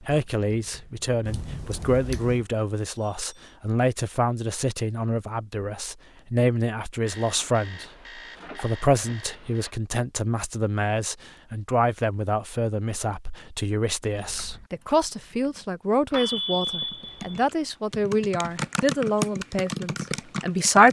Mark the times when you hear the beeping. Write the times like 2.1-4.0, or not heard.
3.0-3.5, 7.0-9.7, 16.1-17.4.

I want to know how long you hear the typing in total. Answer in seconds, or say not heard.
9 s.